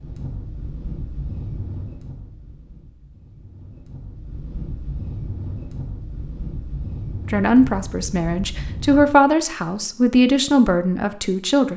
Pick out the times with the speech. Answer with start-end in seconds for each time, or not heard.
7.3-11.7.